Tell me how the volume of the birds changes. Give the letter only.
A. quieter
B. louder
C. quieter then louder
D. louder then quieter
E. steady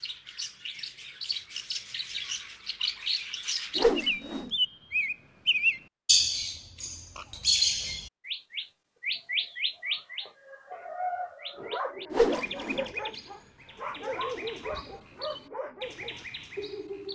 D.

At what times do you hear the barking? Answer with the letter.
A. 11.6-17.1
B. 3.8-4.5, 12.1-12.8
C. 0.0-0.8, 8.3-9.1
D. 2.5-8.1
A.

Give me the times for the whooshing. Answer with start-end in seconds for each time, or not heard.
3.8-4.5, 12.1-12.8.